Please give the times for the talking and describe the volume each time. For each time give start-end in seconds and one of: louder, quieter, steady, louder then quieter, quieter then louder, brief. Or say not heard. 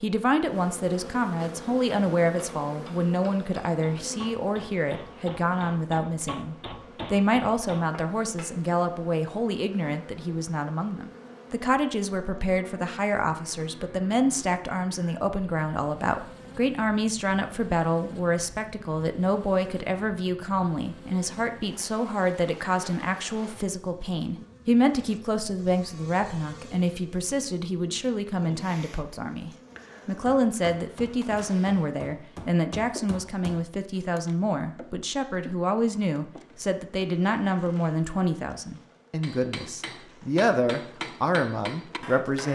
0.0-42.5 steady.